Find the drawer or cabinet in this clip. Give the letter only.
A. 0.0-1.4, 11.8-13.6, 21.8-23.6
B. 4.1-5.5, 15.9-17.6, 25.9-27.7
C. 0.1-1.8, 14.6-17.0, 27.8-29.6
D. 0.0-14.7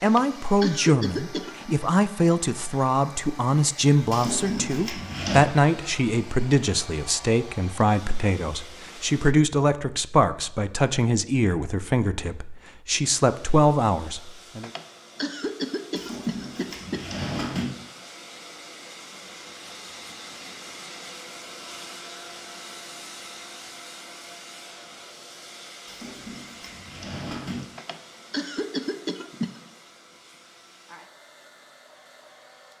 B.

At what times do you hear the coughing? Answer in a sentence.
The coughing can be heard from 0.1 to 1.8 s, from 14.6 to 17.0 s and from 27.8 to 29.6 s.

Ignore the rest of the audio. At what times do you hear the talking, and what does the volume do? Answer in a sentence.
You can hear the talking from 0.0 to 14.7 s, at a steady volume.